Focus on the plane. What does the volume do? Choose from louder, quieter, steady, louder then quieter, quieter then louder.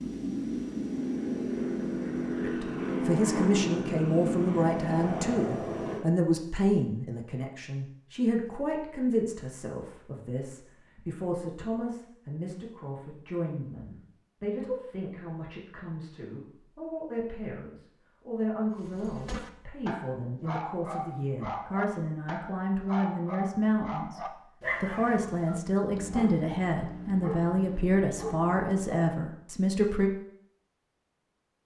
steady.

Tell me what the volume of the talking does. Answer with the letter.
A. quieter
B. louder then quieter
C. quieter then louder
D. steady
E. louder
C.